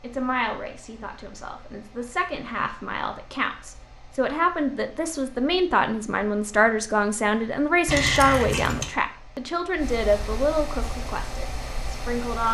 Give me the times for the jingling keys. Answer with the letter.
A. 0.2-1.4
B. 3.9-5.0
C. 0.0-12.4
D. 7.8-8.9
D.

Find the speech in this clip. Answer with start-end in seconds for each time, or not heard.
0.0-12.4.